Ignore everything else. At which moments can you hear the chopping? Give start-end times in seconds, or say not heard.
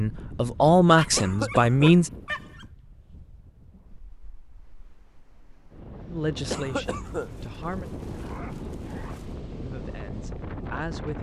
not heard.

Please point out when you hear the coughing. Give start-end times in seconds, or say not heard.
1.1-1.9, 6.5-7.3.